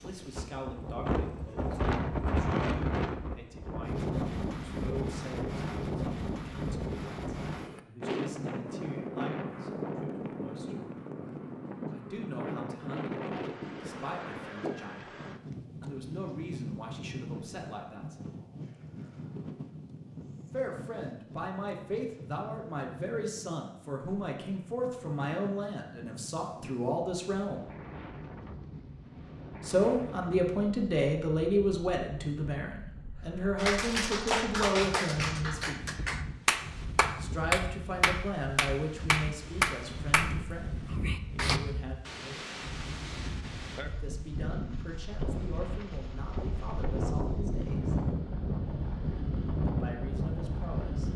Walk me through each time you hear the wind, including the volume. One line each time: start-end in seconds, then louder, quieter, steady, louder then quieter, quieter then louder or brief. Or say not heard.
0.0-51.1 quieter then louder.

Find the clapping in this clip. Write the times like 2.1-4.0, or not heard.
33.5-41.6.